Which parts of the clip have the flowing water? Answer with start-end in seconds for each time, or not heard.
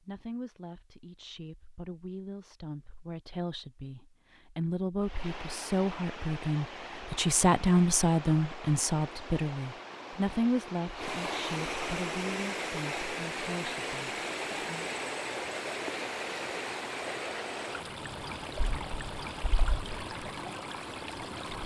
5.0-21.6.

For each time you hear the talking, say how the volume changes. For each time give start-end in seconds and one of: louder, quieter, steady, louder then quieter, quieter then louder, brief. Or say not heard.
0.0-14.9 louder then quieter.